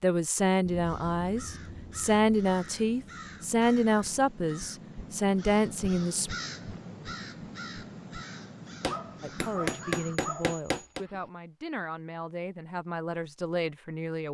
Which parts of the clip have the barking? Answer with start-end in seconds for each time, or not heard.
8.8-11.3.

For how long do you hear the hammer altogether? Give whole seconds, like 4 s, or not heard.
2 s.